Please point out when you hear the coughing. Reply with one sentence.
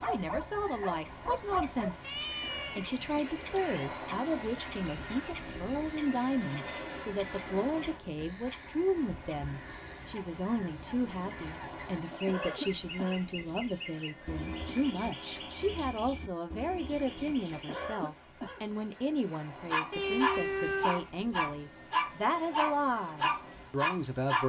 The coughing can be heard from 2.2 to 3.4 s, from 12.1 to 13.2 s and from 17.5 to 18.6 s.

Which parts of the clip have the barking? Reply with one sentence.
You can hear the barking from 0.0 to 2.0 s and from 19.6 to 24.4 s.